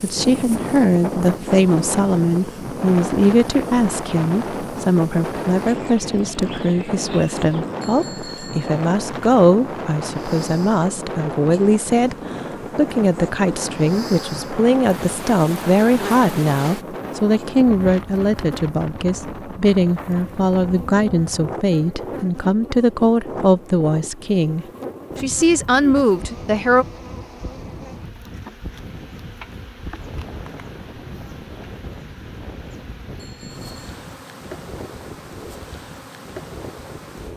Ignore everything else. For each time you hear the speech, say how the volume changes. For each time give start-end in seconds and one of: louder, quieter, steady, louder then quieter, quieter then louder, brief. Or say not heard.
0.0-12.2 steady
12.8-26.9 steady.